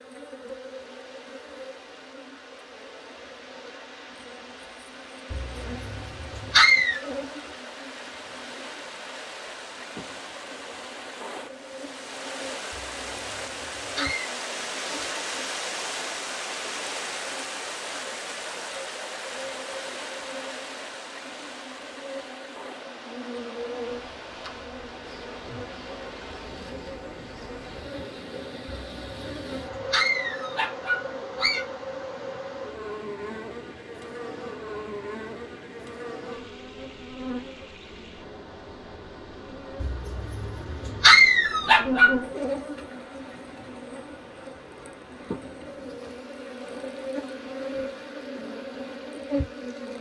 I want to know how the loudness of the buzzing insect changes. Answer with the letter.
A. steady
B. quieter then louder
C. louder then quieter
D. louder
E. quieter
D.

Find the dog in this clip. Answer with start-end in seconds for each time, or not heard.
5.3-7.0, 12.7-14.3, 28.9-31.6, 39.8-42.1.